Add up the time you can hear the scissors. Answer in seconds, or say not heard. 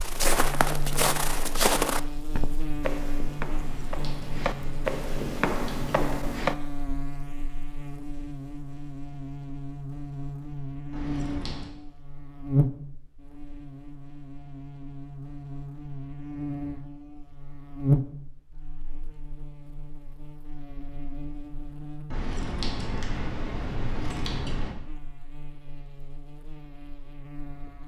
6 s.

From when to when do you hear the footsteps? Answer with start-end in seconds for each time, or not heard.
0.0-6.5.